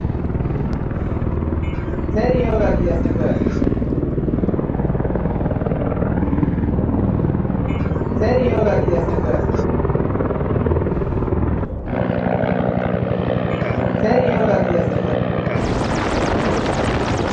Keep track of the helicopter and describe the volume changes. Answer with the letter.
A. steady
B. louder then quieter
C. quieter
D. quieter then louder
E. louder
A.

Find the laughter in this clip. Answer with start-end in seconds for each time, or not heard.
1.6-3.6, 7.7-9.7, 13.5-15.2.